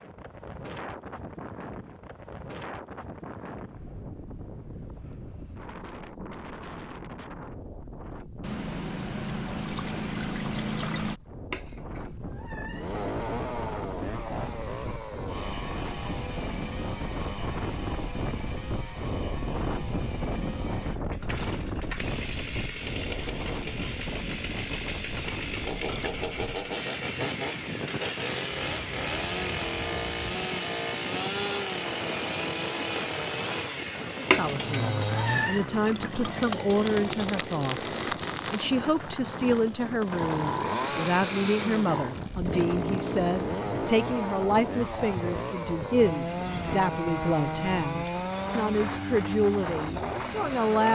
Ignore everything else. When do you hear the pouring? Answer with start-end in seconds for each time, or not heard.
8.4-11.2, 25.7-26.1, 35.7-36.4.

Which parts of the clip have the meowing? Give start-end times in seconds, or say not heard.
11.5-12.9, 34.3-35.6.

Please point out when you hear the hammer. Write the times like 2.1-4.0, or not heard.
not heard.